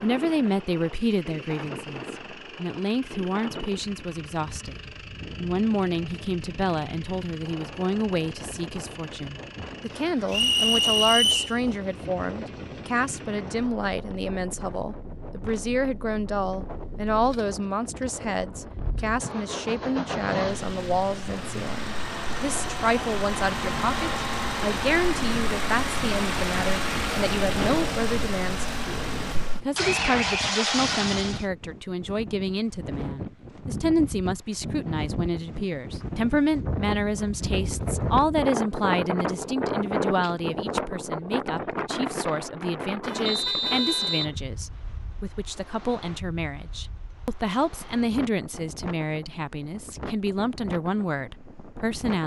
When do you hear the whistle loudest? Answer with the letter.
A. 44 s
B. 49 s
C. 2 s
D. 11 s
D.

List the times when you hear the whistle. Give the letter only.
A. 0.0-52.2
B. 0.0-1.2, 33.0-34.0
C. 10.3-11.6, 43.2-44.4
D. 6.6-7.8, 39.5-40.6
C.